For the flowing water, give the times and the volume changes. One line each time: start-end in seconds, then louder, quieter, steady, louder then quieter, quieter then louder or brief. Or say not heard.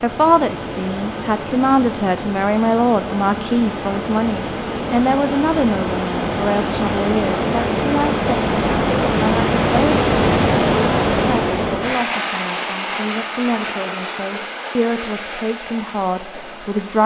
0.0-17.0 louder then quieter.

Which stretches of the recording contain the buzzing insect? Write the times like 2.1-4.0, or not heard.
not heard.